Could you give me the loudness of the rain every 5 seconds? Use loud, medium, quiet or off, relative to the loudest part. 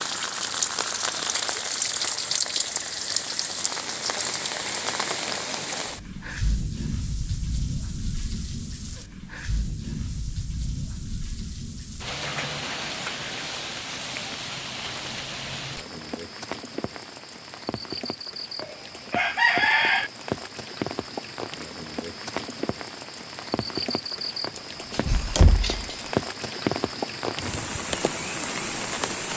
loud, medium, medium, medium, medium, loud.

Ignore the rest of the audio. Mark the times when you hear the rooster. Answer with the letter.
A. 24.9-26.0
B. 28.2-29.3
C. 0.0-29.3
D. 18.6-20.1
D.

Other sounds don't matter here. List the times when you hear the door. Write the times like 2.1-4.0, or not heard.
24.9-26.0.